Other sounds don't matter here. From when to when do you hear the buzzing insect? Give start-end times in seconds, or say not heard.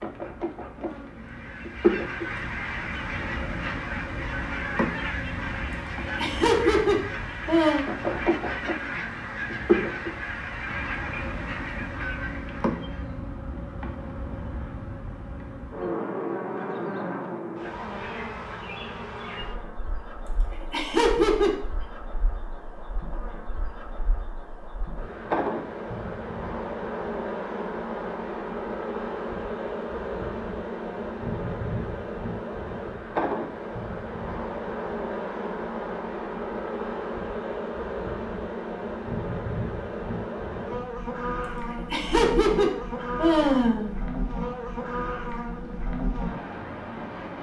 0.0-47.3.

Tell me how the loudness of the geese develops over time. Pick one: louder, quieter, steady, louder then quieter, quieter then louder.
steady.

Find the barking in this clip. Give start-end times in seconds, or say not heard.
not heard.